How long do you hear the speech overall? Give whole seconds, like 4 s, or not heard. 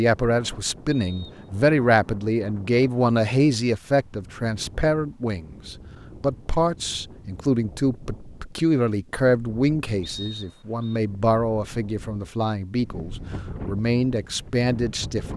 15 s.